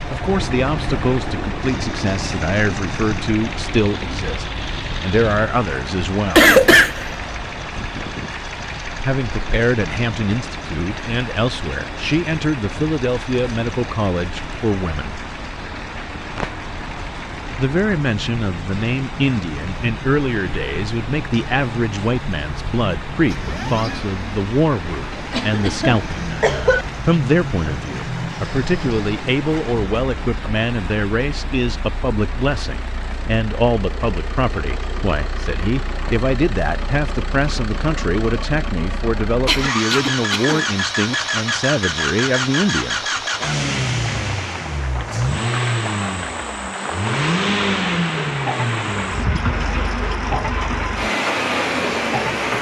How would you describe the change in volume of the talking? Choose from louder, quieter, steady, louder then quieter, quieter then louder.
steady.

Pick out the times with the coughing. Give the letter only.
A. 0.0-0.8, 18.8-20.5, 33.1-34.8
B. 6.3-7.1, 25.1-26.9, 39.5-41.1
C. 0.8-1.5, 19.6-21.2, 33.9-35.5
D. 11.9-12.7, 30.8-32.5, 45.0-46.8
B.